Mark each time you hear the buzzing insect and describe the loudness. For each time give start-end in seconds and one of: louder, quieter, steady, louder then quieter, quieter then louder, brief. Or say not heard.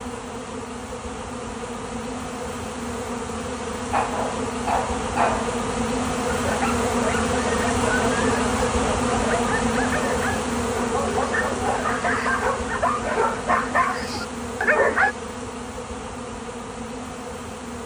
0.0-17.8 louder then quieter.